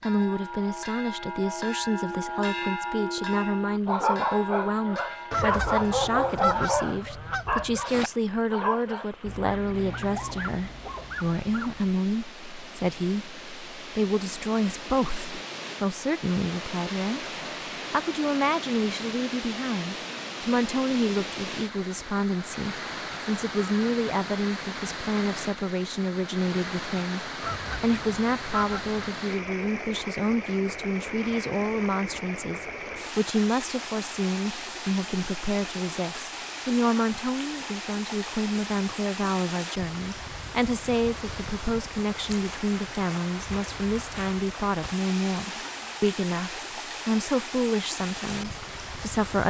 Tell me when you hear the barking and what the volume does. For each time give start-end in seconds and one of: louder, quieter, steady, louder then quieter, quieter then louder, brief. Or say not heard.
3.9-11.9 quieter.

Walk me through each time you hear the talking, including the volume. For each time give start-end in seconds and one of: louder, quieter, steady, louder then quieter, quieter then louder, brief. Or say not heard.
0.0-49.4 steady.